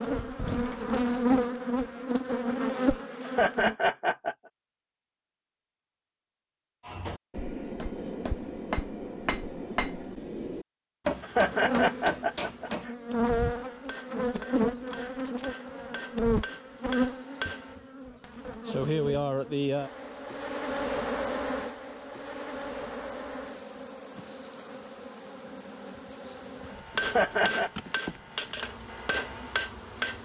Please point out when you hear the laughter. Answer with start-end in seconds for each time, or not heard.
3.2-4.3, 11.2-12.9, 27.0-27.7.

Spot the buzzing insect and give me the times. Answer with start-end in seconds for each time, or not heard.
0.0-3.8, 11.4-30.2.